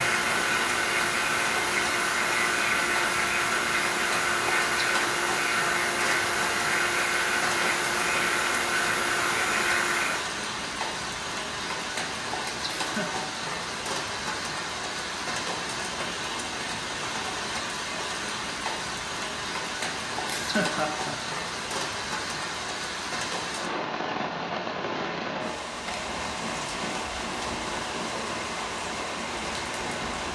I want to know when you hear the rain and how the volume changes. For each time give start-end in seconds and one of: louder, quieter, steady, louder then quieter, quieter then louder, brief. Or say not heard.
0.0-30.3 steady.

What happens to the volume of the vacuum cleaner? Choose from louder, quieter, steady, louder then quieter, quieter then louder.
steady.